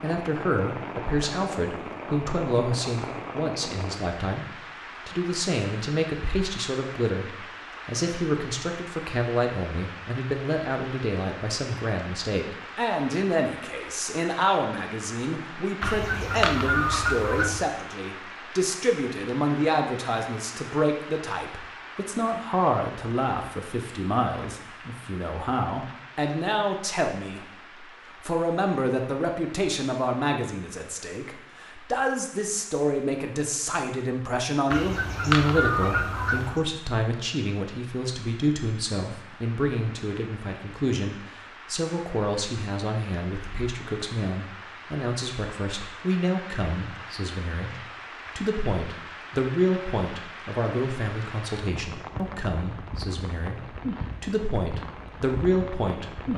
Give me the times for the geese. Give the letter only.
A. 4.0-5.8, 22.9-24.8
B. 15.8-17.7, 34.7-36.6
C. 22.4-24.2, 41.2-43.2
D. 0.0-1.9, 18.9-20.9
B.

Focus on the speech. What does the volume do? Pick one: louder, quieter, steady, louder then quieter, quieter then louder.
steady.